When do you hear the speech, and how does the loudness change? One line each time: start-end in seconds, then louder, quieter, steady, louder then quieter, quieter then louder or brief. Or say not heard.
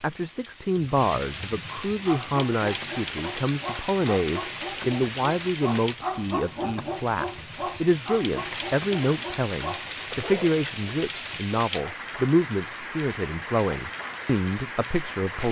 0.0-15.4 steady.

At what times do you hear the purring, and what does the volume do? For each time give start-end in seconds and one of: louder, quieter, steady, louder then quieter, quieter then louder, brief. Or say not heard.
not heard.